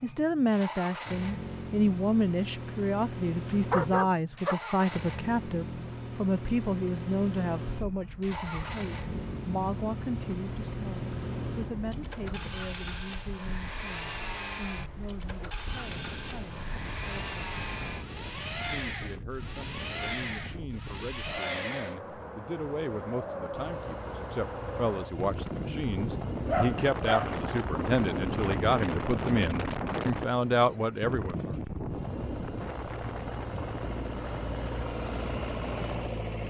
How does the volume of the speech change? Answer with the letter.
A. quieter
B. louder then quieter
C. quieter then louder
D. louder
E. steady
C.